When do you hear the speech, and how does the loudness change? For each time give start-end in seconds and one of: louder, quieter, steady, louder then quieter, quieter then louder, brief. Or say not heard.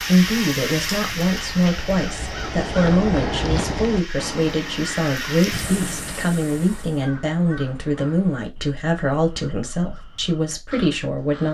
0.0-11.4 steady.